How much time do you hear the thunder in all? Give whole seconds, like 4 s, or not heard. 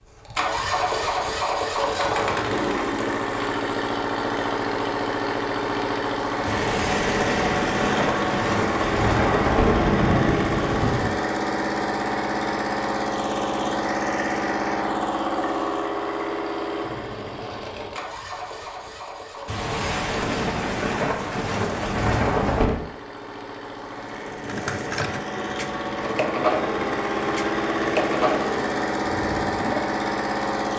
8 s.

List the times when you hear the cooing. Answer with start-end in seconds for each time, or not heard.
24.4-29.9.